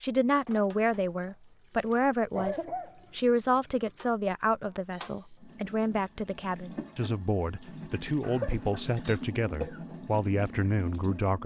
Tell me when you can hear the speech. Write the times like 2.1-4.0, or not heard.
0.0-11.4.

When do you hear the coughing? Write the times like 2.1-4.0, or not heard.
2.4-3.0, 8.2-9.8.